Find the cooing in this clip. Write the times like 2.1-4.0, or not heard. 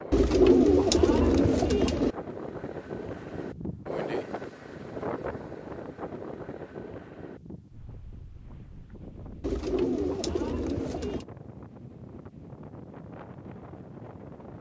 0.1-2.1, 9.4-11.2.